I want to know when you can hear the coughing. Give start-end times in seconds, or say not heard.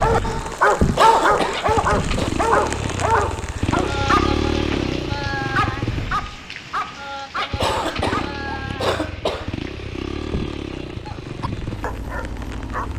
0.9-2.3, 7.5-9.6.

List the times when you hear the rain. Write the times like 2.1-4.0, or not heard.
0.0-12.9.